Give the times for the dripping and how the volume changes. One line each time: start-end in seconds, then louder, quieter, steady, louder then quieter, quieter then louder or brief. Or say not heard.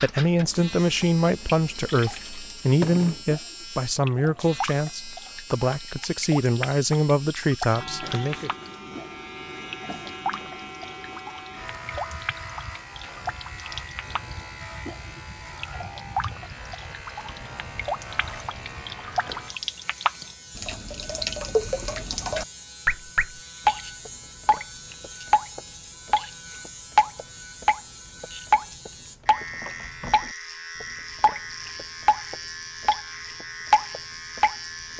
0.0-34.9 louder.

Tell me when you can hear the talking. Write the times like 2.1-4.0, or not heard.
0.0-8.5.